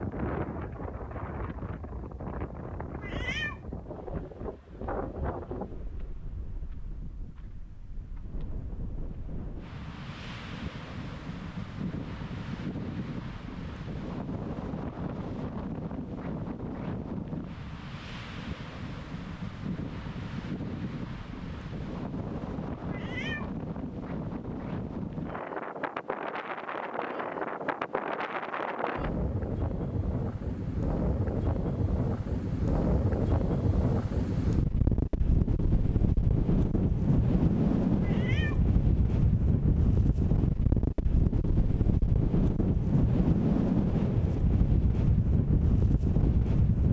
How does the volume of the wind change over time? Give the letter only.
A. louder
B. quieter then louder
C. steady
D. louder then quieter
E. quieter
A.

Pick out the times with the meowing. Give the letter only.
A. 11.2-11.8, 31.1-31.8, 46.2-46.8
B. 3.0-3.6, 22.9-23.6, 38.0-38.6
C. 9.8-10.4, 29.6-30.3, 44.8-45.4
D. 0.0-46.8
B.